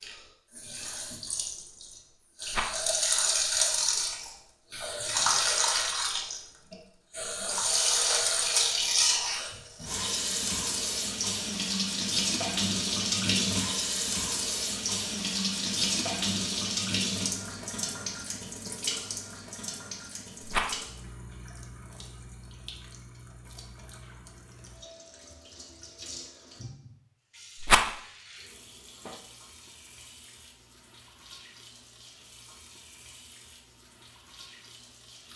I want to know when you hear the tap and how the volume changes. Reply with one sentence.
You can hear the tap from 0.0 to 35.3 s, getting quieter.